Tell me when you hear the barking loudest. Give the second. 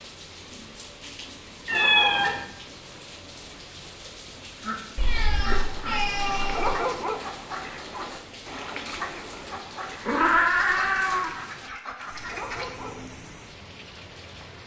7 s.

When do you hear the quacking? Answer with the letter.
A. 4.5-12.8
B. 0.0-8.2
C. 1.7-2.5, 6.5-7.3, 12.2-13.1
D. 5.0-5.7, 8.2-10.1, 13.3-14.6
A.